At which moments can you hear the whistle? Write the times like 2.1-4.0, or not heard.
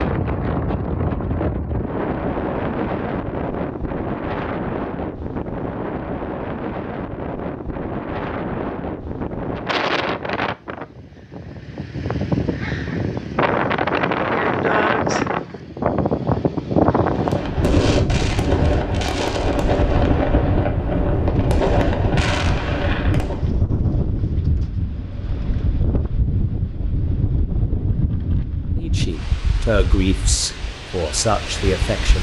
not heard.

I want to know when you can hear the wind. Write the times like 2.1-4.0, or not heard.
0.0-32.1.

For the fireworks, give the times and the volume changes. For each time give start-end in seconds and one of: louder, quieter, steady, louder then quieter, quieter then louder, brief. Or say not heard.
17.1-23.5 steady.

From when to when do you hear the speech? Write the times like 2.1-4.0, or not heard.
28.8-32.1.